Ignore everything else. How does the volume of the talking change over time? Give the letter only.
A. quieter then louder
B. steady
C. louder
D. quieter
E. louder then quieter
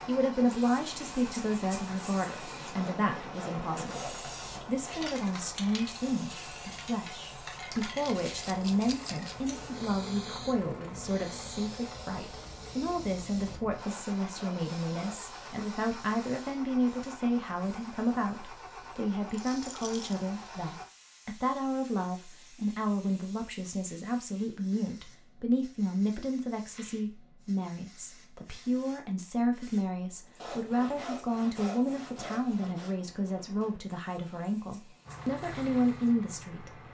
B.